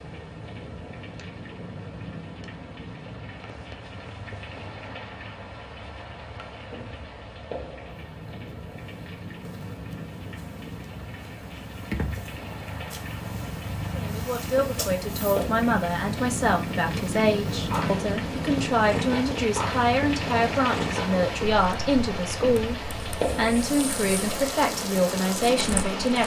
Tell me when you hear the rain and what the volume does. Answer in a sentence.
You can hear the rain from 0.0 to 26.2 s, getting louder.